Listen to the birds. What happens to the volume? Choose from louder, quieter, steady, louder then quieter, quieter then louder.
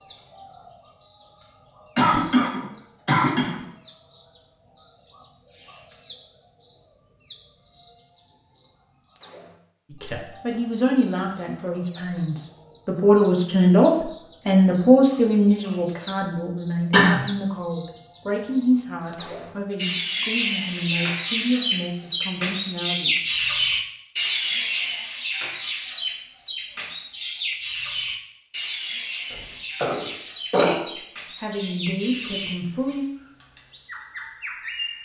louder then quieter.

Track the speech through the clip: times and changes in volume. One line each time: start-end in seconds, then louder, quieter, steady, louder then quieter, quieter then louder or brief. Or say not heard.
9.9-23.2 louder then quieter
31.4-33.0 brief.